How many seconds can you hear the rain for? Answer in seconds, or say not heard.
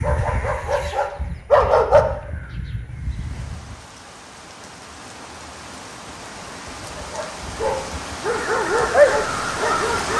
7 s.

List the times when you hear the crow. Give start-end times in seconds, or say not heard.
0.0-3.8, 8.2-10.1.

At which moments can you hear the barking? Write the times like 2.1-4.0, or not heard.
0.0-2.1, 6.9-10.1.